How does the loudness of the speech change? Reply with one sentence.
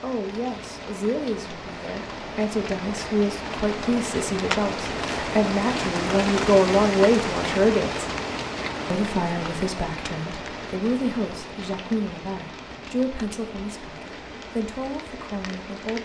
The volume of the speech goes up, then down.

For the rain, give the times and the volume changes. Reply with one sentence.
You can hear the rain from 0.0 to 16.0 s, getting louder then quieter.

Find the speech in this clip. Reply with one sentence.
You can hear the speech from 0.0 to 8.1 s and from 8.9 to 16.0 s.